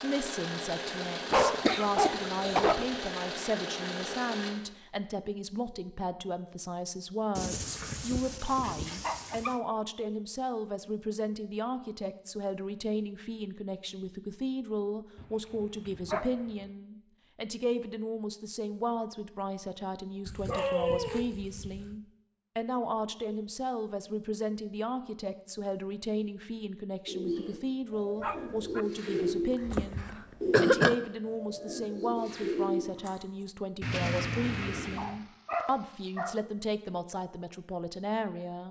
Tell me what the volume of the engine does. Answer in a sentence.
The volume of the engine stays about the same.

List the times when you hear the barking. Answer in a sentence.
The barking can be heard from 1.3 to 2.9 s, from 7.3 to 9.6 s, from 15.2 to 16.4 s, from 20.2 to 21.9 s, from 28.2 to 28.9 s and from 35.0 to 36.4 s.